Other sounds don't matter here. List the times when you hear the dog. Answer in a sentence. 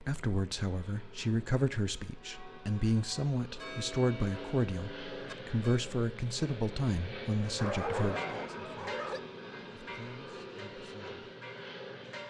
You can hear the dog from 7.5 to 9.2 s.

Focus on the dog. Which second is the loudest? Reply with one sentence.
The volume of the dog peaks at 8 seconds.